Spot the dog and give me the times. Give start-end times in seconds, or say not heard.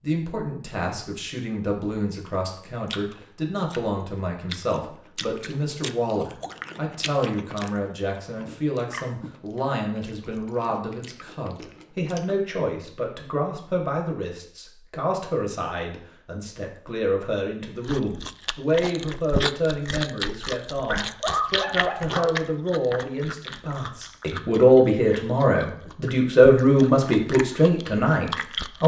20.9-22.4.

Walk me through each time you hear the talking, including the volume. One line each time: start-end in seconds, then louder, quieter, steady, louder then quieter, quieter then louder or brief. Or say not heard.
0.0-28.8 louder.